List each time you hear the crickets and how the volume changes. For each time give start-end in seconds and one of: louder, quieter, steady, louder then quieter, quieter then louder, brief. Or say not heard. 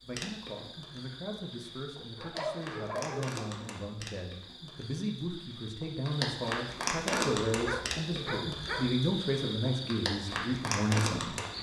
0.0-11.5 louder.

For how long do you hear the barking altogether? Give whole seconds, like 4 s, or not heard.
3 s.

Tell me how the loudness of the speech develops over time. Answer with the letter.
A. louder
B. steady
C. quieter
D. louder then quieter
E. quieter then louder
A.